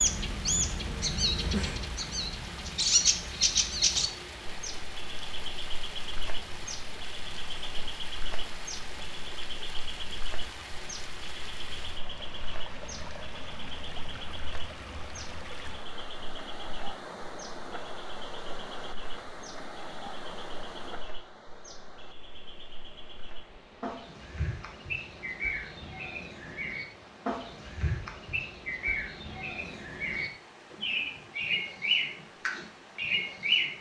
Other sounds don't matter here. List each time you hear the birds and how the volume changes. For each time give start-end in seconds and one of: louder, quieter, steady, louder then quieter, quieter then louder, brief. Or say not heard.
0.0-33.7 quieter then louder.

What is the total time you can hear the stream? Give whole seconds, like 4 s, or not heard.
34 s.